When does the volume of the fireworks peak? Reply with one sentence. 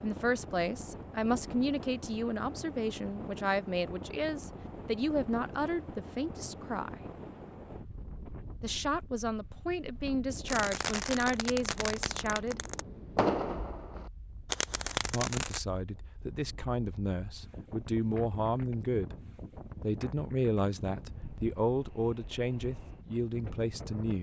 The volume of the fireworks peaks at 13 seconds.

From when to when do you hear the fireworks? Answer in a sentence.
You can hear the fireworks from 10.4 to 15.6 s.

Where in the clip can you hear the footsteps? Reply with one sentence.
The footsteps can't be heard in this clip.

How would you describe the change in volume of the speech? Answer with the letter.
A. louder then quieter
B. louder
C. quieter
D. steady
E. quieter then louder
D.